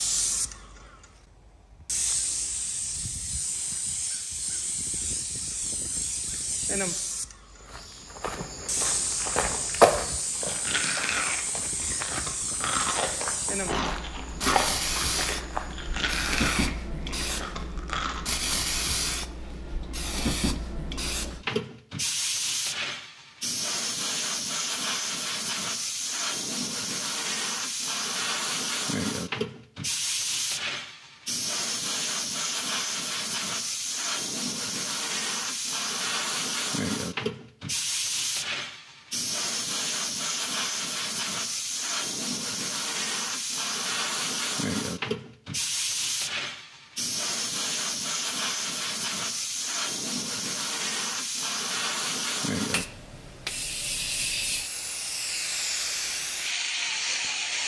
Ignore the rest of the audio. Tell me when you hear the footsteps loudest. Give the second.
10 s.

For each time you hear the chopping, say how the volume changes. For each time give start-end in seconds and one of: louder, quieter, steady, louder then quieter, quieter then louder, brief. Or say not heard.
not heard.